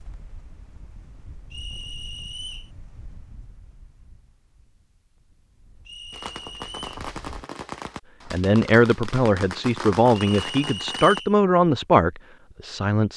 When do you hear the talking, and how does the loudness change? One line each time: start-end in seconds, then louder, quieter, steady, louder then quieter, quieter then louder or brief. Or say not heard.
8.3-13.1 steady.